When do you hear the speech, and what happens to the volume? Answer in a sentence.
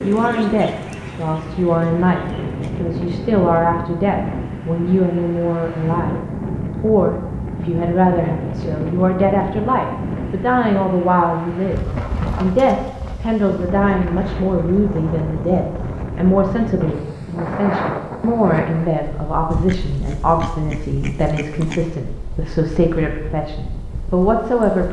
The speech can be heard from 0.0 to 24.8 s, at a steady volume.